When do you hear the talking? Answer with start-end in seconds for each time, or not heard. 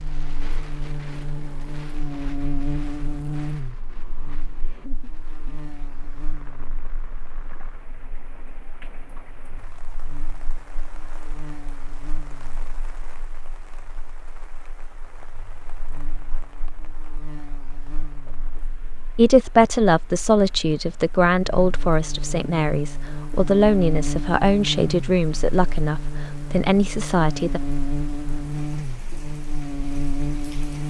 19.1-27.6.